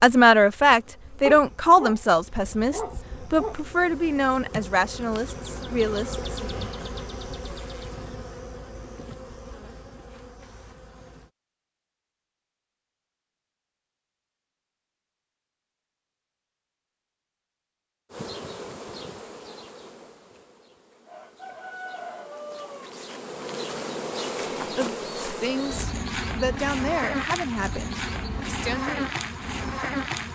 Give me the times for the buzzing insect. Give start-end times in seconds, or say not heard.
0.0-11.3, 18.1-30.3.